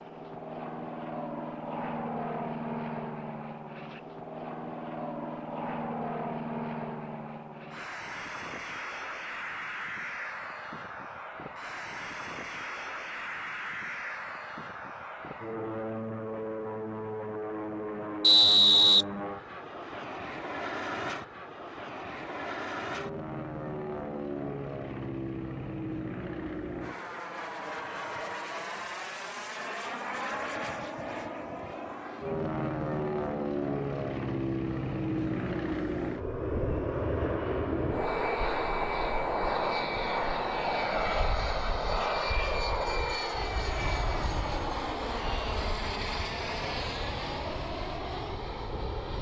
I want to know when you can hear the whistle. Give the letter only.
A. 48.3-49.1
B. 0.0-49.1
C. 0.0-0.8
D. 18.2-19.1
D.